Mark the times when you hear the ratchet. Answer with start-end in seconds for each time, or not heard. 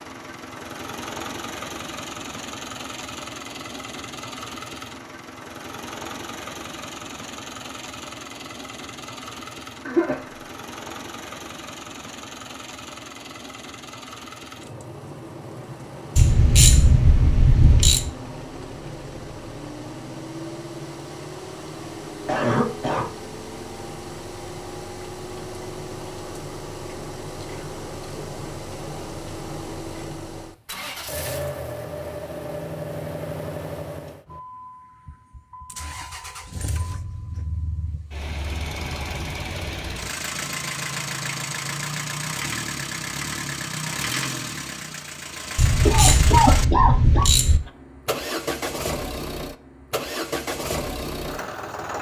16.1-18.1, 45.5-47.6.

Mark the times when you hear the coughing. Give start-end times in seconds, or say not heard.
9.8-10.2, 22.2-23.1, 45.9-47.2.